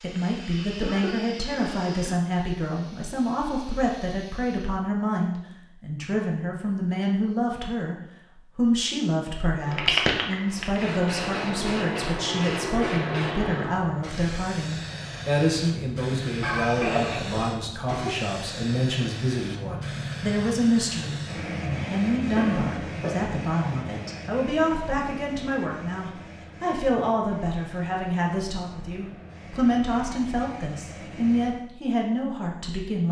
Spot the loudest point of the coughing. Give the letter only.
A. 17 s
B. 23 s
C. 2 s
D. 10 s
A.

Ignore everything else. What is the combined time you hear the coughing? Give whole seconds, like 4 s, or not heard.
4 s.